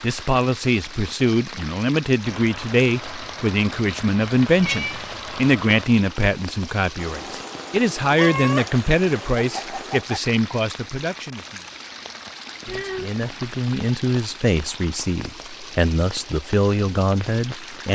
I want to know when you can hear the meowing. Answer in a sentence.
You can hear the meowing from 4.2 to 5.3 s and from 12.7 to 13.4 s.